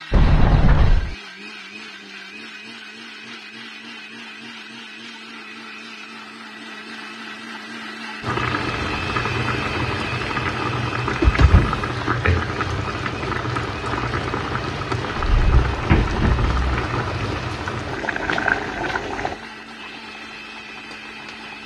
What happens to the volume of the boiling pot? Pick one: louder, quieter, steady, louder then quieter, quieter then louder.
quieter.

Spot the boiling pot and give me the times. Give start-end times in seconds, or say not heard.
8.2-21.6.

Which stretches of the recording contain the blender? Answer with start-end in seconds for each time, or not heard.
0.0-21.6.